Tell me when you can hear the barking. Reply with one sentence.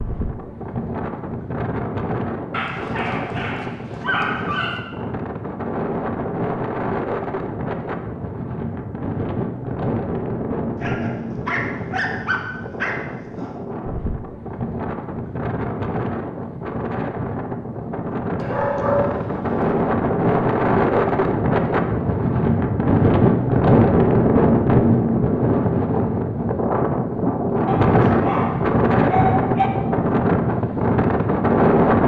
The barking can be heard from 2.5 to 4.8 s, from 10.8 to 13.5 s, from 18.4 to 19.7 s and from 27.6 to 29.7 s.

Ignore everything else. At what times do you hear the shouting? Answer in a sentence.
The shouting can't be heard in this clip.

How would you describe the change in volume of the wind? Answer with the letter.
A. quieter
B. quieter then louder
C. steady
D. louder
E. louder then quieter
D.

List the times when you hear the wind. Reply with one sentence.
You can hear the wind from 0.0 to 32.0 s.